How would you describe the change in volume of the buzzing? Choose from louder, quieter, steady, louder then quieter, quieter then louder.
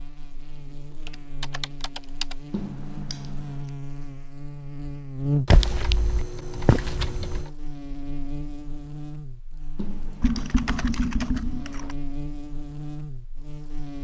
louder then quieter.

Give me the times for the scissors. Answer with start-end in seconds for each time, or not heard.
2.5-3.7, 9.8-11.1.